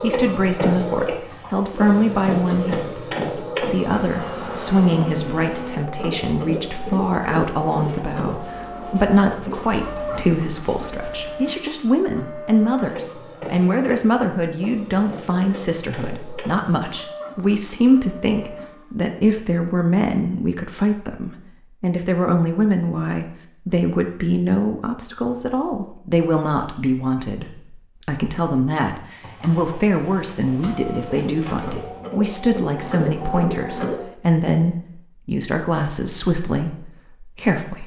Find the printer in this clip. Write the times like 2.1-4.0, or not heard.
0.0-19.0, 30.6-34.1.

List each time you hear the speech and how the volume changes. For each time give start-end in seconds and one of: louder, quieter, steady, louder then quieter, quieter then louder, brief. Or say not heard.
0.0-37.8 steady.